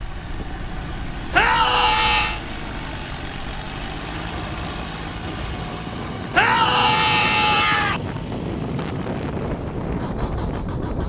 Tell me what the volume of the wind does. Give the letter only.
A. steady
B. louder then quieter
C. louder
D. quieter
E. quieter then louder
C.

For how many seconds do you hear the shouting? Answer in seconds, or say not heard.
3 s.